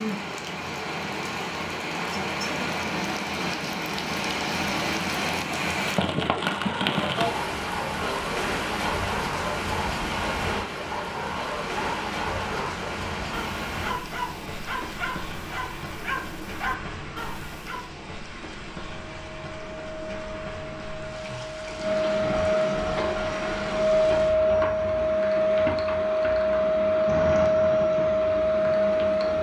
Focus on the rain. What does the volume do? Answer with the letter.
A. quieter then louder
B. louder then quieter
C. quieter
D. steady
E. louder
C.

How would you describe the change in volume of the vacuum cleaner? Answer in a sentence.
The volume of the vacuum cleaner goes up.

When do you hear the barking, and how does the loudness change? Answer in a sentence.
You can hear the barking from 6.4 to 17.9 s, at a steady volume.